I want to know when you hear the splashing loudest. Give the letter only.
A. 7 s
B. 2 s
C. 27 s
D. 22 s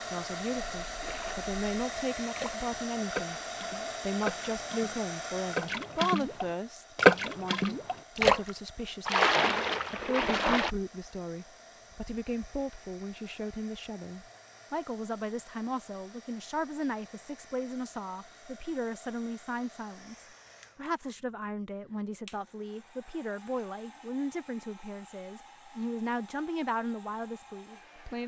A.